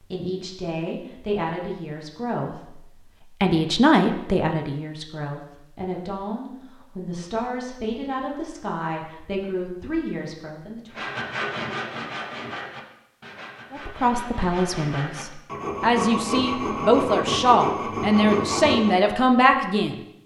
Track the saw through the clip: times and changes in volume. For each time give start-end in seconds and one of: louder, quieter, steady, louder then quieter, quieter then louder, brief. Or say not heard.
10.9-19.0 quieter then louder.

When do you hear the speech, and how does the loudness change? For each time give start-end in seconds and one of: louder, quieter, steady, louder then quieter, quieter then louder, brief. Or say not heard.
0.0-10.9 louder then quieter
13.7-20.0 louder.